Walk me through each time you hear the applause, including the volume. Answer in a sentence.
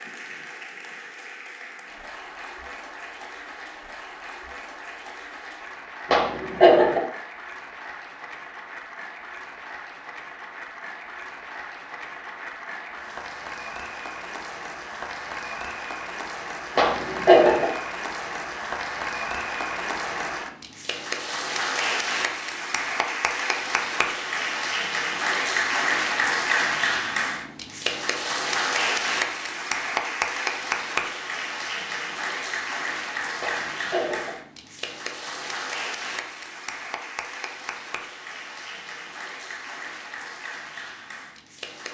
The applause can be heard from 0.0 to 41.9 s, getting louder then quieter.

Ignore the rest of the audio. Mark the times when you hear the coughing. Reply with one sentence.
You can hear the coughing from 6.1 to 7.0 s, from 16.8 to 17.6 s and from 33.4 to 34.3 s.